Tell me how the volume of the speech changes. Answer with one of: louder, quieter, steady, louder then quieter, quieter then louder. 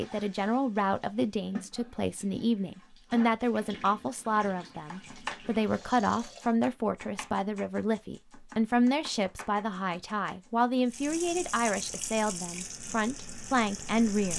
steady.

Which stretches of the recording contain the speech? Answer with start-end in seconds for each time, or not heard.
0.0-14.3.